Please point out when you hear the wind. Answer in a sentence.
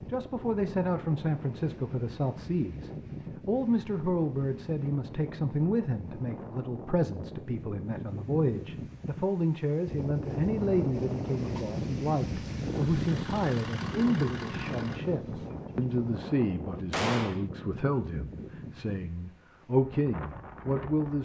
The wind can be heard from 0.0 to 21.2 s.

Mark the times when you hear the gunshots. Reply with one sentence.
The gunshots can be heard from 16.9 to 17.4 s.